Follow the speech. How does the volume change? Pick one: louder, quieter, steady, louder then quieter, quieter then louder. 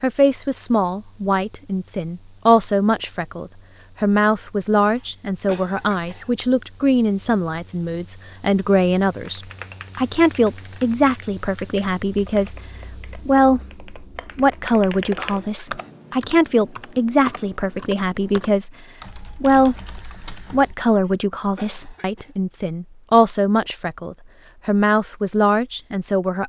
steady.